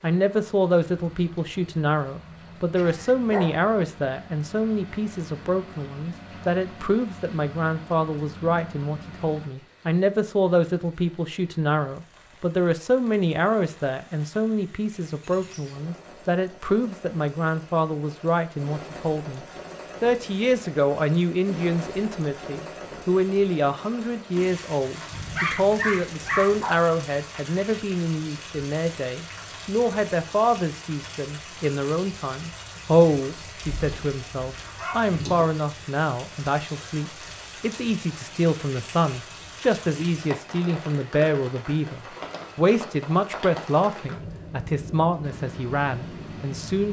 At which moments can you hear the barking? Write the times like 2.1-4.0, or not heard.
2.8-3.5, 25.1-26.8, 33.8-35.1.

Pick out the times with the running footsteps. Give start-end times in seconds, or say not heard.
not heard.